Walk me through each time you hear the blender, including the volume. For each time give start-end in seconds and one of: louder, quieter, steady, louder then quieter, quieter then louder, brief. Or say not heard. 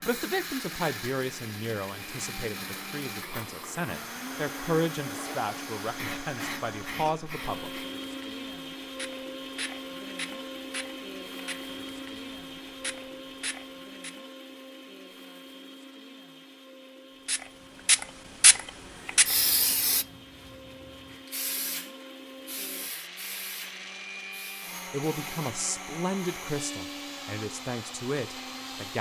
0.0-28.9 quieter then louder.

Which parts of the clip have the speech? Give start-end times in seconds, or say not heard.
0.0-7.7, 24.9-28.9.